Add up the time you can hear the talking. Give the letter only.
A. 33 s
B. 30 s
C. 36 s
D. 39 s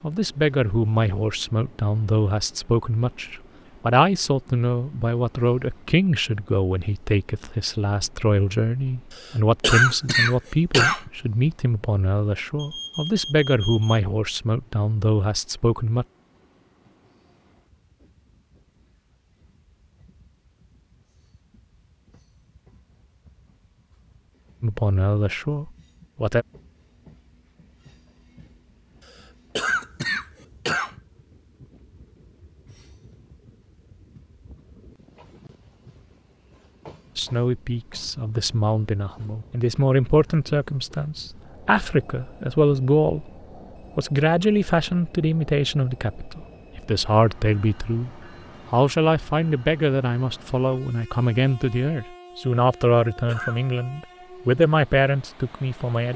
C.